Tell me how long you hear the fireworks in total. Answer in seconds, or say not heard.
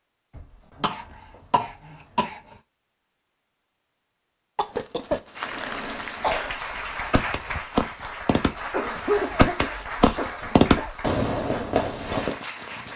7 s.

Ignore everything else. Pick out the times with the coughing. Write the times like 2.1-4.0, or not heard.
0.3-2.4, 4.5-6.5, 8.7-10.9.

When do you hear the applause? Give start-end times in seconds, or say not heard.
5.3-12.9.